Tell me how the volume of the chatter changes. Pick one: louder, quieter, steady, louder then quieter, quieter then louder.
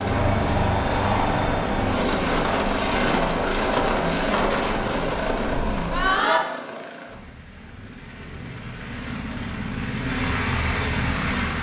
steady.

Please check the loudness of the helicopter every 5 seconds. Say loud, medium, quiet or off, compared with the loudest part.
loud, medium, loud.